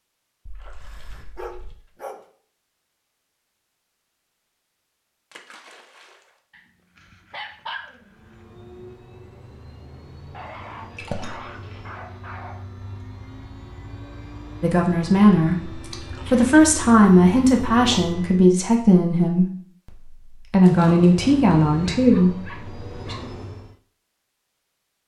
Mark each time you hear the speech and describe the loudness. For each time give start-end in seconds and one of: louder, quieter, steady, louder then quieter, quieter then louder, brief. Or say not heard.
14.6-23.1 steady.